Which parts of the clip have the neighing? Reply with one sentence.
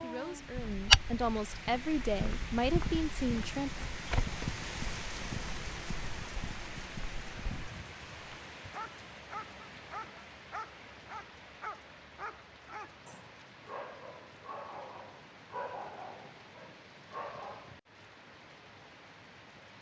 The neighing can't be heard in this clip.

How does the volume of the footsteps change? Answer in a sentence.
The loudness of the footsteps goes down.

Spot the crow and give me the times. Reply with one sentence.
The crow can't be heard in this clip.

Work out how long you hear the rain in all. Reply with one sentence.
You can hear the rain for 20 seconds altogether.